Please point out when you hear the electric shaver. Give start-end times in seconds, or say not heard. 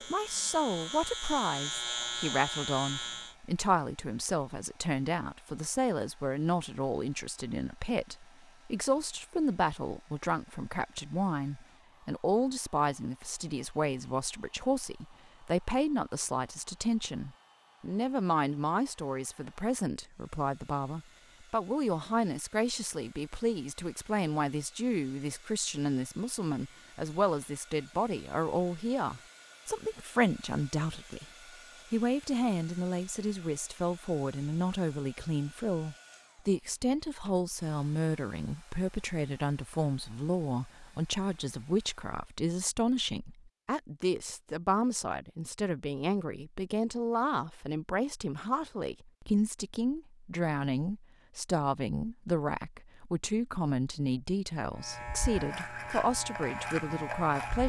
0.0-3.4, 54.8-57.6.